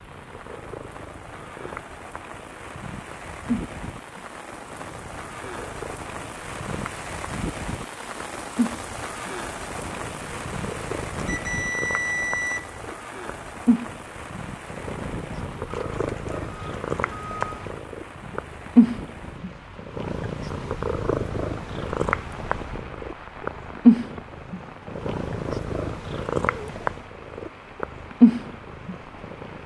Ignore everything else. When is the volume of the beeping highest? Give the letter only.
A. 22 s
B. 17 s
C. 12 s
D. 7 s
C.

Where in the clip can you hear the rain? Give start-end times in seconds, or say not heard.
0.0-29.6.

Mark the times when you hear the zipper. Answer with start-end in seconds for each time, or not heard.
not heard.